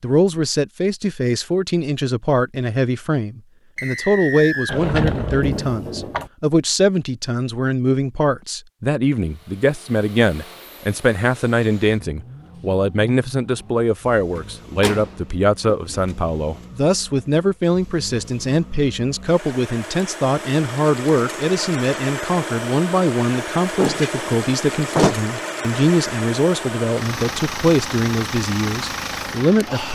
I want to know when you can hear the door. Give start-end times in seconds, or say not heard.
4.7-6.3, 14.3-16.1, 23.6-25.1.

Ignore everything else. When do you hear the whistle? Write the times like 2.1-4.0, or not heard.
3.8-4.8.